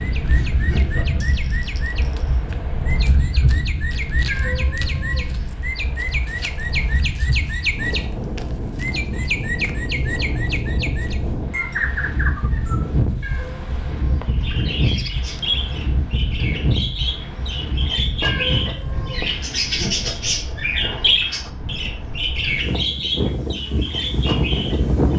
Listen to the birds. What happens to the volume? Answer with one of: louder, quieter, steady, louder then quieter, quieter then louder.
louder.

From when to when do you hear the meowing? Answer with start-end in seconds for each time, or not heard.
4.2-5.5, 13.2-14.3, 18.2-19.4.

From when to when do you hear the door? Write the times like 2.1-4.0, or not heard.
not heard.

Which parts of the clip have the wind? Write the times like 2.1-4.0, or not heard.
0.0-25.1.